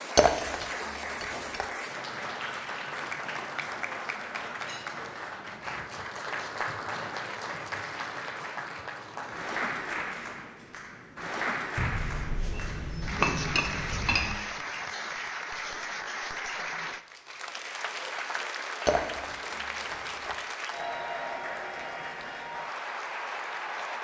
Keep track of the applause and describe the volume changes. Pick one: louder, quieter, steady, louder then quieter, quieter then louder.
steady.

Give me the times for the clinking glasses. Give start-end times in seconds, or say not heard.
0.1-1.6, 11.8-14.4, 18.9-20.4.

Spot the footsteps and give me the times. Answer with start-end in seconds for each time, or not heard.
not heard.